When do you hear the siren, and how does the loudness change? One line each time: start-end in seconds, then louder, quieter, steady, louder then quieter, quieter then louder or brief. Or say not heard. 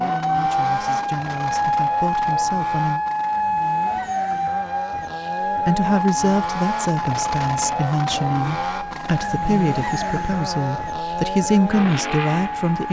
0.0-12.8 quieter.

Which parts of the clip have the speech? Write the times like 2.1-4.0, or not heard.
0.0-3.0, 5.7-12.8.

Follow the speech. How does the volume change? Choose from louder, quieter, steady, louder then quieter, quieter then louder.
louder.